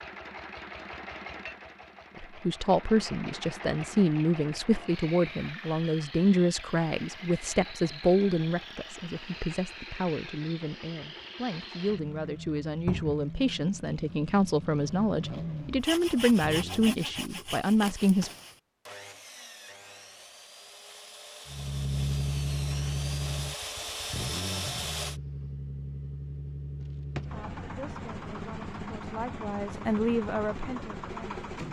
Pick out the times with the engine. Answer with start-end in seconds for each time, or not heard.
0.0-16.9, 21.4-31.6.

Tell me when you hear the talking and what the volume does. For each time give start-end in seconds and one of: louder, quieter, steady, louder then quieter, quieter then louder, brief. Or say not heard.
2.1-18.3 quieter then louder
27.3-31.4 louder then quieter.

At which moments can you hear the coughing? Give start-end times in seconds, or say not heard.
not heard.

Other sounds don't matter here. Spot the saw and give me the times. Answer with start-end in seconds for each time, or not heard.
15.8-25.2.